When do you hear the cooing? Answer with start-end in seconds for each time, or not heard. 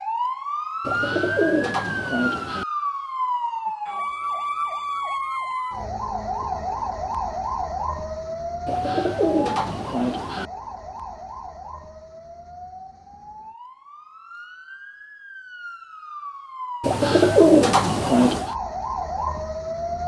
0.8-2.6, 8.7-10.5, 16.8-18.5.